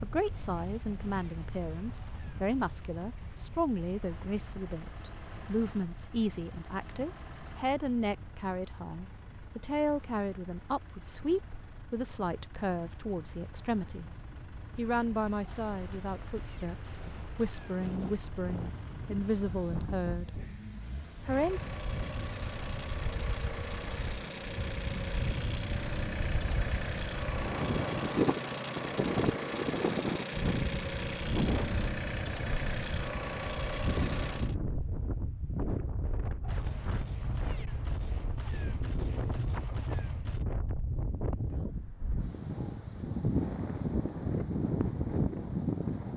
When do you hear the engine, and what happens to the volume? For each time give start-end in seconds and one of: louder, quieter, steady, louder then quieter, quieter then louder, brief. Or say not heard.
3.9-34.5 louder.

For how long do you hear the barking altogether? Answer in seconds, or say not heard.
not heard.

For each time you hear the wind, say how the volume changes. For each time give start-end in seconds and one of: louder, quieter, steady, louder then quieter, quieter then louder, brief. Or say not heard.
0.0-46.1 louder.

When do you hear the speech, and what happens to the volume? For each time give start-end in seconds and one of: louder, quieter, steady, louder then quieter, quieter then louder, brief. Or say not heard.
0.0-14.1 steady
14.8-20.3 quieter then louder
21.2-21.7 brief.